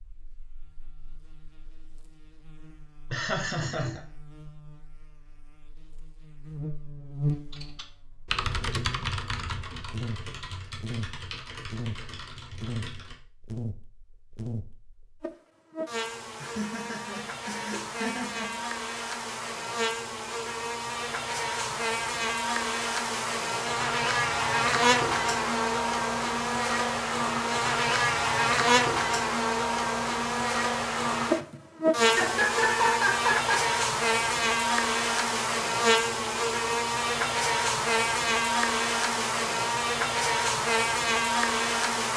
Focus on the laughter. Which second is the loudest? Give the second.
33 s.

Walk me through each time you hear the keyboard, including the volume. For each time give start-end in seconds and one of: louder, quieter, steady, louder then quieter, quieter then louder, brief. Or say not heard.
7.3-13.2 quieter.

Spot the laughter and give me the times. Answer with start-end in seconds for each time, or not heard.
3.1-4.0, 16.4-18.6, 31.4-33.8.